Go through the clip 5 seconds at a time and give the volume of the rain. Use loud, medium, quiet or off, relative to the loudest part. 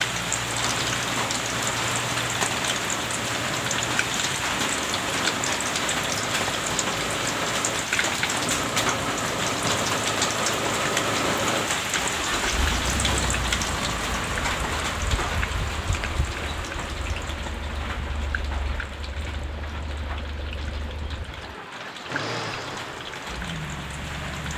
loud, loud, loud, medium, medium.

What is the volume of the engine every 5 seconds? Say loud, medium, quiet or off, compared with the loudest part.
medium, loud, loud, medium, medium.